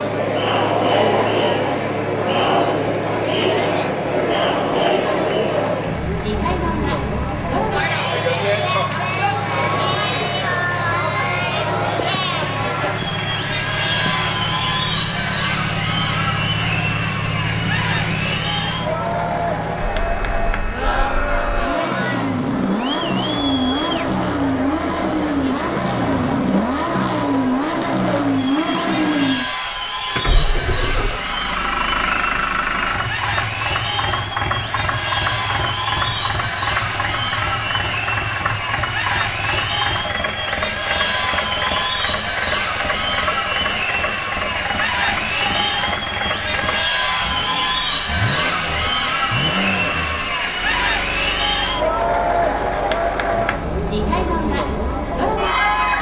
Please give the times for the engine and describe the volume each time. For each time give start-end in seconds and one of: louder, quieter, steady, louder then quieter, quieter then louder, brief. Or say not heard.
0.0-55.9 louder then quieter.